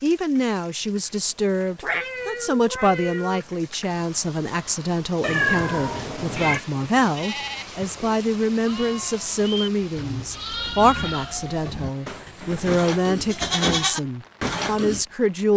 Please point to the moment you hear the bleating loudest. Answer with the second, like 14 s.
14 s.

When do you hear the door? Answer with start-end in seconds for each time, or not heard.
not heard.